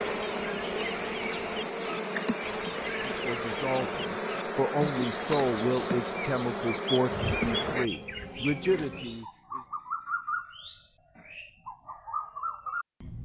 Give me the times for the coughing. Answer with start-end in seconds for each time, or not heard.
not heard.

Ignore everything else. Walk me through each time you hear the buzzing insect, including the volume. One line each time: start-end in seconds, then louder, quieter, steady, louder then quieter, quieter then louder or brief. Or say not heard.
0.0-9.2 steady.